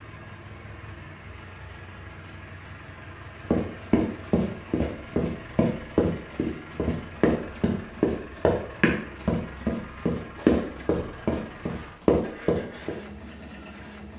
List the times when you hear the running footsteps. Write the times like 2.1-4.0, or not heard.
3.5-12.9.